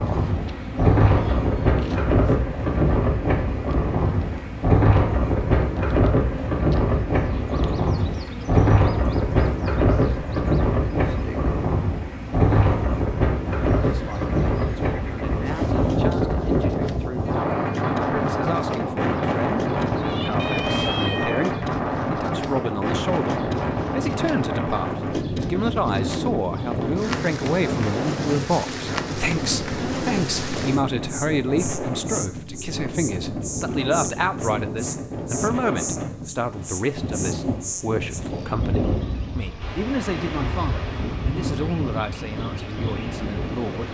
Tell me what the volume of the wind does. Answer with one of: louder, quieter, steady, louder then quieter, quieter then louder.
quieter.